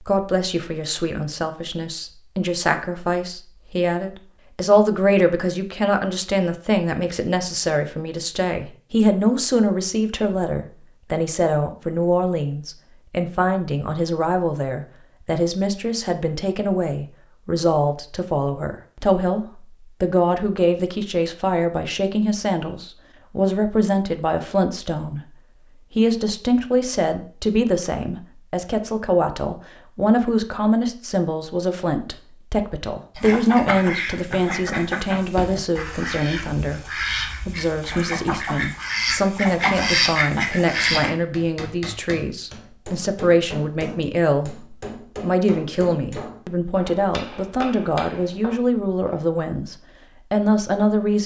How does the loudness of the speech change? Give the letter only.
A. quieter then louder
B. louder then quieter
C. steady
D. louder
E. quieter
C.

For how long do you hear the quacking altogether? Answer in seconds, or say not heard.
8 s.